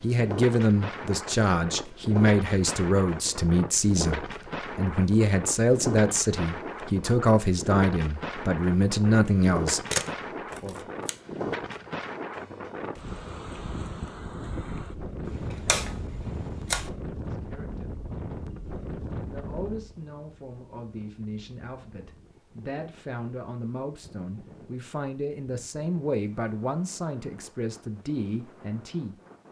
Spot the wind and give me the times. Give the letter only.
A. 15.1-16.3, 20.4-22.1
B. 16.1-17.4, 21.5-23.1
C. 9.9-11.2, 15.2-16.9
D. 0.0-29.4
D.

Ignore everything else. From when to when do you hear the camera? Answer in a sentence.
You can hear the camera from 9.9 to 11.2 s and from 15.2 to 16.9 s.